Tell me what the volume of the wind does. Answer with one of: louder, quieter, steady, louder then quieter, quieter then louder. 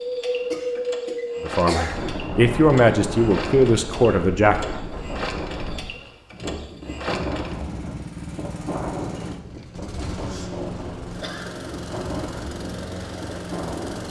quieter.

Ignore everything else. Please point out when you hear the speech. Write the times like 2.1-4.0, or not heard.
1.4-4.7.